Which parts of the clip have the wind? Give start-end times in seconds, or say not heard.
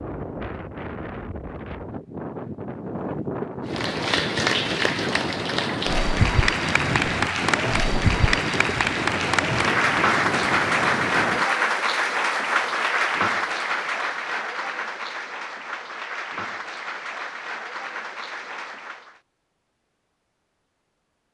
0.0-11.5.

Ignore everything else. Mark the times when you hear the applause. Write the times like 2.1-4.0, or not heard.
3.6-19.2.